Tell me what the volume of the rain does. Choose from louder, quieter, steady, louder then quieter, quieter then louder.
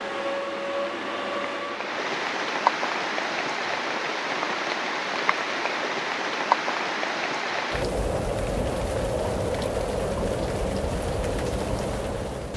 steady.